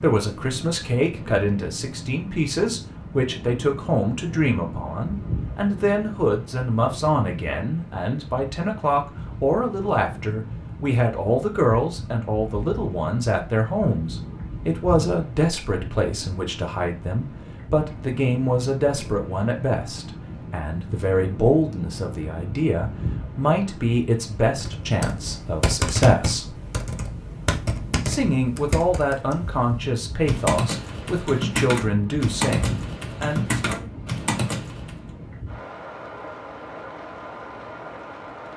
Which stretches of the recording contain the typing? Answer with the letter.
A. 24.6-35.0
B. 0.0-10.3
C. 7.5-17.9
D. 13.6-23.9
A.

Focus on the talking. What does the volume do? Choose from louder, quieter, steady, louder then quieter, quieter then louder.
steady.